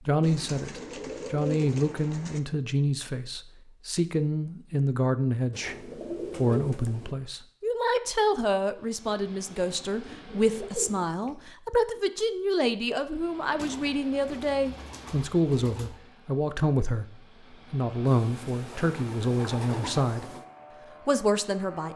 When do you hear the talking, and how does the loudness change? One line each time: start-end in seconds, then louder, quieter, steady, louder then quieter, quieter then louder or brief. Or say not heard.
0.1-20.2 steady
21.1-21.9 brief.